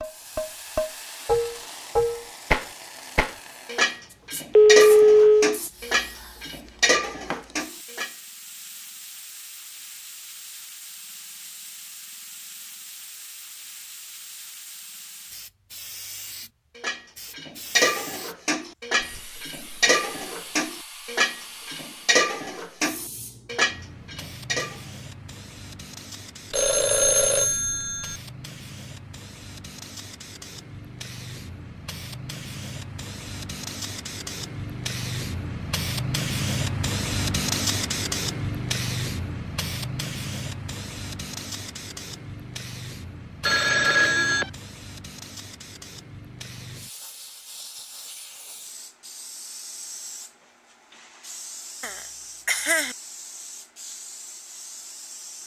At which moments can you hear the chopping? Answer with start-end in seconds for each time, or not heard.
not heard.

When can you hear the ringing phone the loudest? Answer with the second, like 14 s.
5 s.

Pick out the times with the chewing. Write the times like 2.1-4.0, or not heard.
not heard.